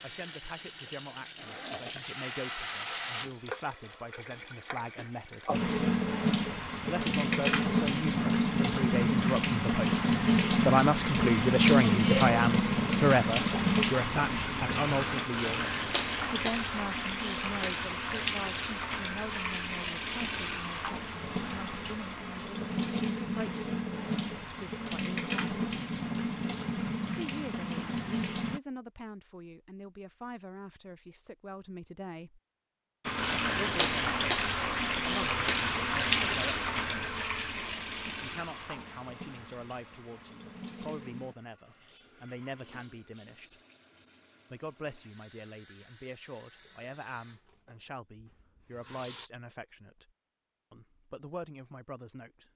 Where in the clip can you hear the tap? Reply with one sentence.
You can hear the tap from 0.0 to 28.6 s and from 33.0 to 49.3 s.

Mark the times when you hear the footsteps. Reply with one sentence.
You can't hear the footsteps here.